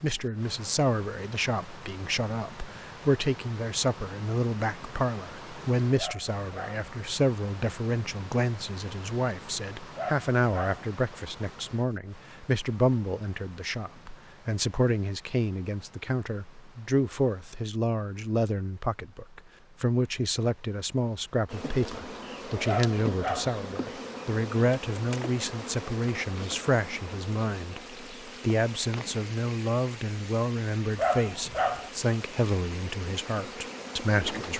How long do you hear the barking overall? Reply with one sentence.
The barking can be heard for 4 seconds in total.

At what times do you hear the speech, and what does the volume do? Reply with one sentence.
You can hear the speech from 0.0 to 34.5 s, at a steady volume.